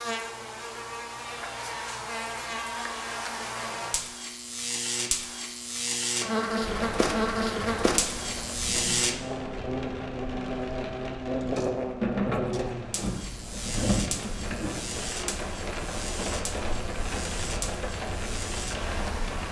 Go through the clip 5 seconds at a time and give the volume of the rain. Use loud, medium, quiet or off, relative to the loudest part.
off, medium, loud, loud.